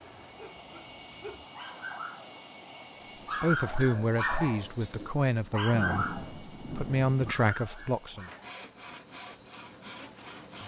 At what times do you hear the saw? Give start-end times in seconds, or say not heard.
8.1-10.6.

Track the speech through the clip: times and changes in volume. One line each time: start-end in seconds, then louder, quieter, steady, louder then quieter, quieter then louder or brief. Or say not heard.
3.4-8.3 steady.